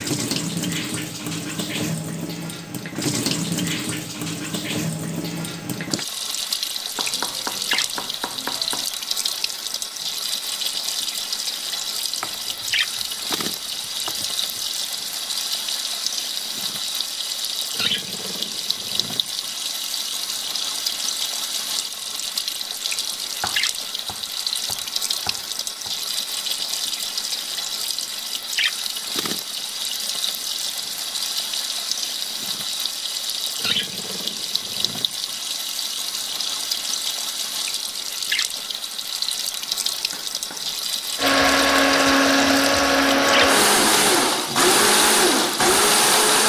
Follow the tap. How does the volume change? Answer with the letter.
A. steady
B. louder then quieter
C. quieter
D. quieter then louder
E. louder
A.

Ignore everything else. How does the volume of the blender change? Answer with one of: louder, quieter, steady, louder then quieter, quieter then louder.
steady.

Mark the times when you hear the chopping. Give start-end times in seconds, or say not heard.
7.0-8.8, 12.2-14.6, 23.4-25.9, 39.9-41.2.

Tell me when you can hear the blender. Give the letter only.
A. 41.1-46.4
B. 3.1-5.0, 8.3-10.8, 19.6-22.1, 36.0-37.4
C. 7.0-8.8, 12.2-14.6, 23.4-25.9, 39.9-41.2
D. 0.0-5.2
A.